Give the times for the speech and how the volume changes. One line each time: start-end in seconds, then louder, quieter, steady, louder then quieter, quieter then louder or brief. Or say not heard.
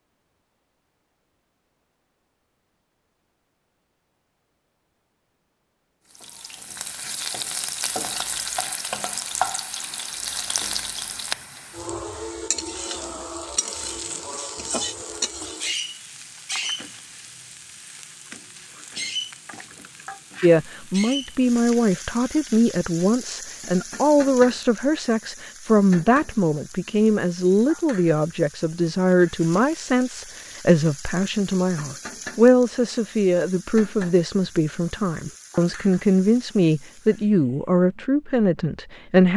20.4-39.3 steady.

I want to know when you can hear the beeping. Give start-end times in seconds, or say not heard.
not heard.